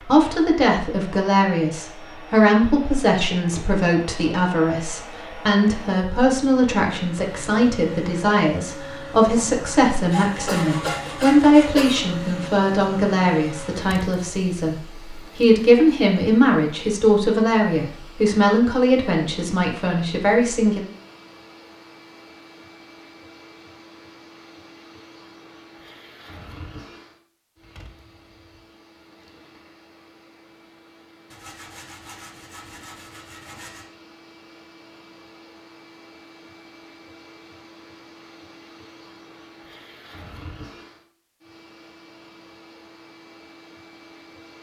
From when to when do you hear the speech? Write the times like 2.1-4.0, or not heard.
0.0-20.9.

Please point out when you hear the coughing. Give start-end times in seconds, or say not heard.
10.4-12.1.